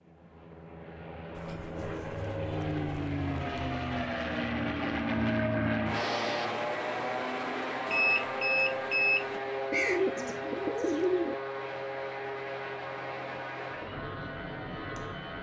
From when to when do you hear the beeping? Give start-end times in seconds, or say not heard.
7.8-9.4.